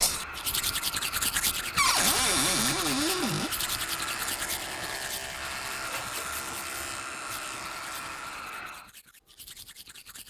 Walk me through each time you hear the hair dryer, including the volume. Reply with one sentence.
You can hear the hair dryer from 0.0 to 8.9 s, at a steady volume.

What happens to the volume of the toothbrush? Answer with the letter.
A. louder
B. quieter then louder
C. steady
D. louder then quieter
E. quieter
E.